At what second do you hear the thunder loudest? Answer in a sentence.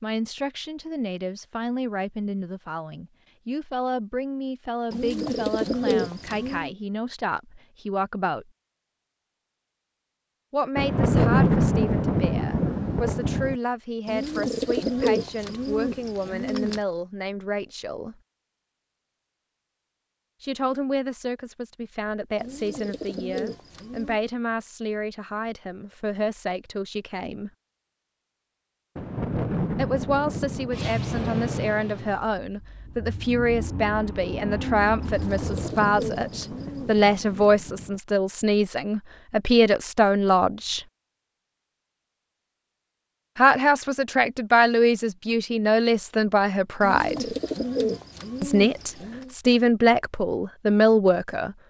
The volume of the thunder peaks at 11 seconds.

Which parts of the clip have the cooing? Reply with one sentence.
The cooing can be heard from 4.9 to 6.8 s, from 14.1 to 16.8 s, from 22.4 to 24.2 s, from 35.0 to 37.5 s and from 46.8 to 49.4 s.